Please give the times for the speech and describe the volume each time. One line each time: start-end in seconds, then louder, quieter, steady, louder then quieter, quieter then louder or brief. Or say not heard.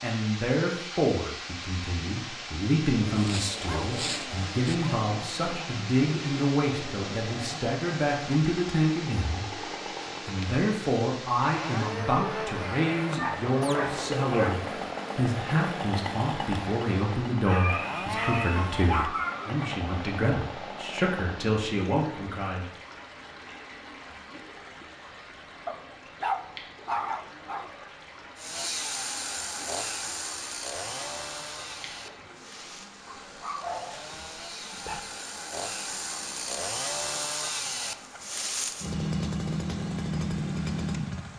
0.0-22.6 steady.